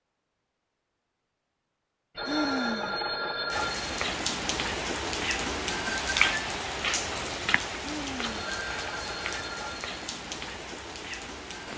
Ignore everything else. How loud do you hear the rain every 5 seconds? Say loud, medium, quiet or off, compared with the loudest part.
loud, loud, medium.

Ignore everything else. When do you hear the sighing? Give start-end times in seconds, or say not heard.
2.2-3.0, 7.8-8.3.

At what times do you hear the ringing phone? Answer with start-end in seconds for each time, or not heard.
2.1-4.0, 8.2-9.9.